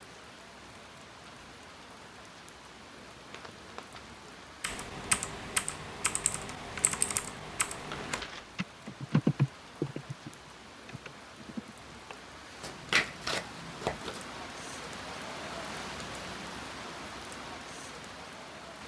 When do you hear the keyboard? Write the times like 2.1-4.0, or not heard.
4.6-12.2.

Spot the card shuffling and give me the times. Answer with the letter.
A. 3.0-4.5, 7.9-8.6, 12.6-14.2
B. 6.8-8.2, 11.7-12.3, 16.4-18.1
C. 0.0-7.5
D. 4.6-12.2
A.